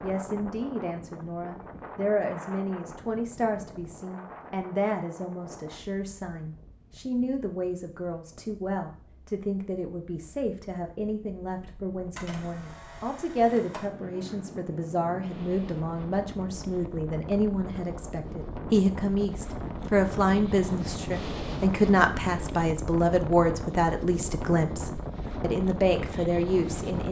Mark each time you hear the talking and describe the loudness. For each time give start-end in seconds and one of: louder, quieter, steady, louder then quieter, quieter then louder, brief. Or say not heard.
0.0-27.0 louder.